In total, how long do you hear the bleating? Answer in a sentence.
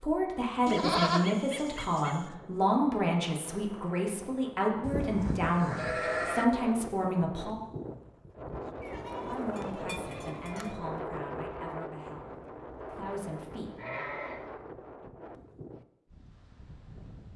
You can hear the bleating for 6 seconds altogether.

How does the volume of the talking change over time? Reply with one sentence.
The loudness of the talking goes down.